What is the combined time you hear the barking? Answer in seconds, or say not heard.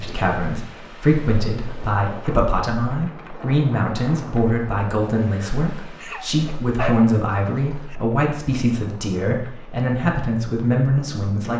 2 s.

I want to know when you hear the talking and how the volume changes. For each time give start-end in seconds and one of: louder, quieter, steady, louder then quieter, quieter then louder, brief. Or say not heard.
0.0-11.5 steady.